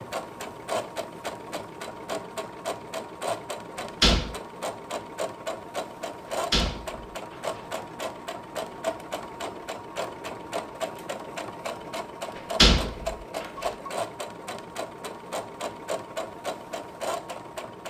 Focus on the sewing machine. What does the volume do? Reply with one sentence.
The volume of the sewing machine stays about the same.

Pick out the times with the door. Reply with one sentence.
You can hear the door from 3.8 to 4.3 s, from 6.3 to 7.6 s and from 12.3 to 13.4 s.